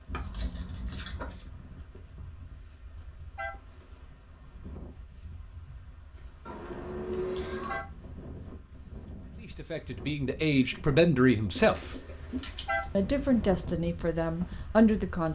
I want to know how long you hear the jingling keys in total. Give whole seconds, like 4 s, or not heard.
4 s.